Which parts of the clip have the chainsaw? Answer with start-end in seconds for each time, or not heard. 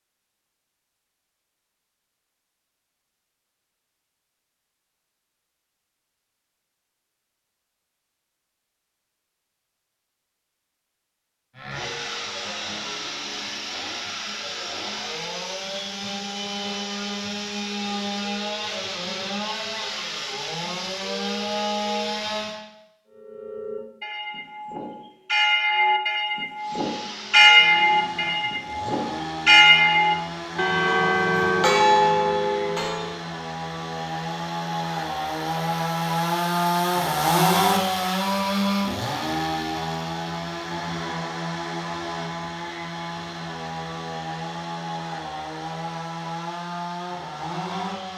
11.6-22.6, 26.6-48.1.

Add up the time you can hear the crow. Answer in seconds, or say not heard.
not heard.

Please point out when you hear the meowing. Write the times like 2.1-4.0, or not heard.
not heard.